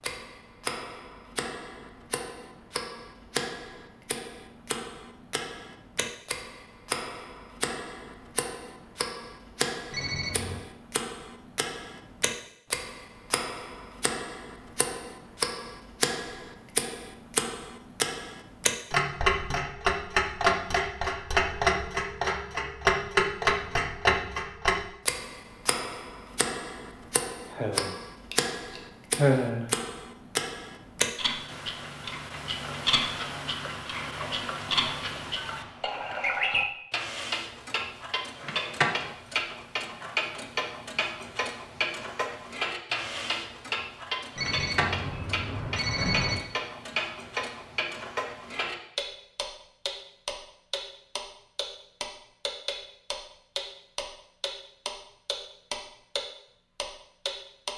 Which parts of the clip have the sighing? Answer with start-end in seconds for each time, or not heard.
27.5-29.6.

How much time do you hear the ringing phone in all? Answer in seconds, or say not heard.
3 s.